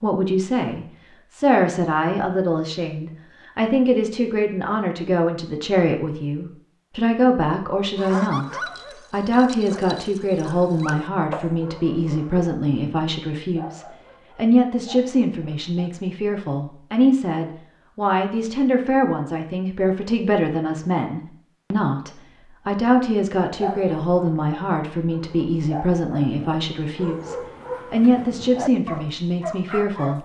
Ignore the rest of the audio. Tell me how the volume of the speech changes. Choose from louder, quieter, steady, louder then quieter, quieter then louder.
steady.